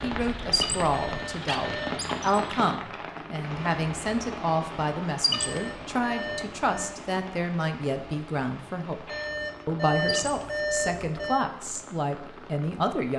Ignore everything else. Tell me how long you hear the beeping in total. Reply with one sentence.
You can hear the beeping for 5 seconds altogether.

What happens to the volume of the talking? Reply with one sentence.
The volume of the talking stays about the same.